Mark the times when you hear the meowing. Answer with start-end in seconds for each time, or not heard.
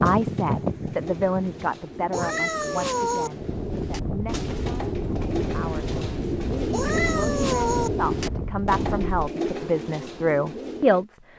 2.1-3.3, 6.7-7.9.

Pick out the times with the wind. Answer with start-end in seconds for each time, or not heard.
0.0-9.2.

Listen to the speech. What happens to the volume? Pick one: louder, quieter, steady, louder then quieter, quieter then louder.
quieter then louder.